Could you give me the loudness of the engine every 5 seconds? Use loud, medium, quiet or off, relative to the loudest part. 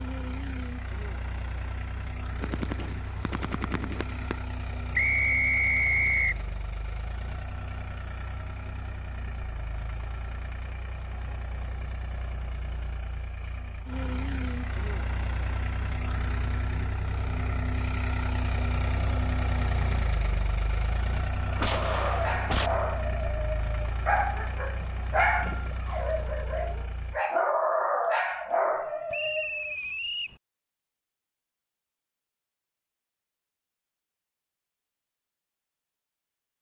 medium, medium, medium, loud, loud, medium, off, off.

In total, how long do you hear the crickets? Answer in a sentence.
You can't hear the crickets here.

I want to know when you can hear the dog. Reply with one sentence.
You can hear the dog from 21.6 to 29.8 s.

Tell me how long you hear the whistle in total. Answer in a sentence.
You can hear the whistle for 3 seconds altogether.